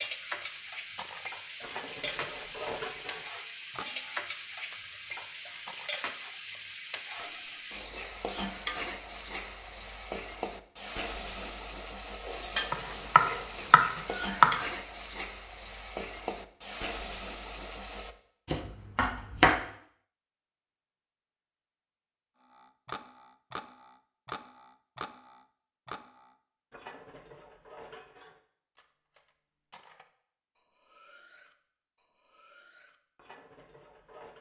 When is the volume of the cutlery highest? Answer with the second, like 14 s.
3 s.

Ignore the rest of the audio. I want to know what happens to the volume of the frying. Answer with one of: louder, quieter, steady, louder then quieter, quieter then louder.
steady.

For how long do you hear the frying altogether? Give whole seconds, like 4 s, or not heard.
18 s.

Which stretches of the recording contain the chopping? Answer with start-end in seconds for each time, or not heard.
12.7-14.7, 18.4-19.6.